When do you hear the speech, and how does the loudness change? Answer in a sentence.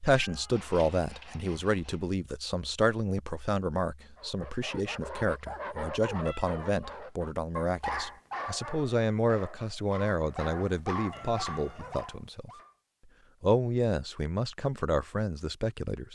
The speech can be heard from 0.0 to 12.5 s, at a steady volume; and briefly from 13.4 to 16.1 s.